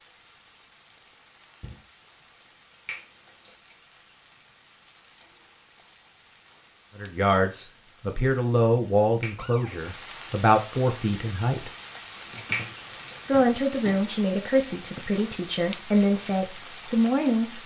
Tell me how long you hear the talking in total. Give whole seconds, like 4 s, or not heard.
9 s.